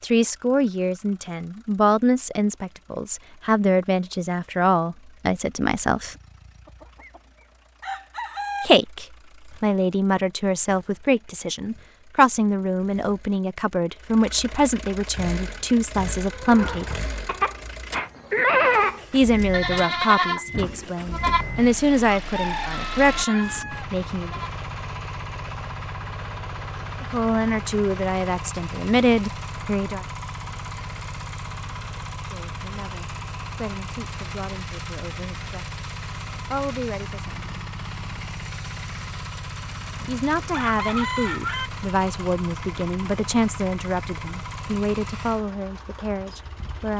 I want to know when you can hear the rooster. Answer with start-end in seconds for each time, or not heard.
6.7-7.2, 7.8-8.7, 22.3-23.9, 40.0-41.7.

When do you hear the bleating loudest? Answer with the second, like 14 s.
19 s.